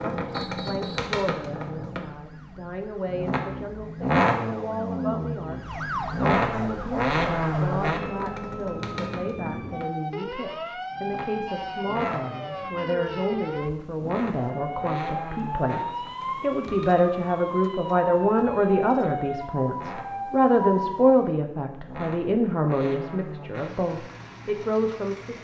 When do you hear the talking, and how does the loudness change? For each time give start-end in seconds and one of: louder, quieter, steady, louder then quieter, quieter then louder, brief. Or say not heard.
0.0-25.4 louder.